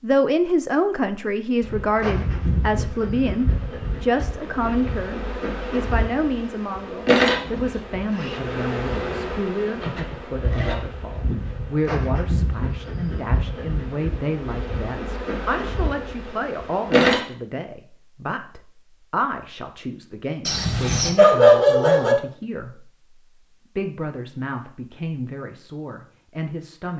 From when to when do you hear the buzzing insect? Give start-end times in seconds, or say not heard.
1.6-17.2.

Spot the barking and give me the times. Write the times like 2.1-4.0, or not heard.
20.4-22.1.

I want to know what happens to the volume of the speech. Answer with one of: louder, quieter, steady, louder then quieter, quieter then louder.
quieter.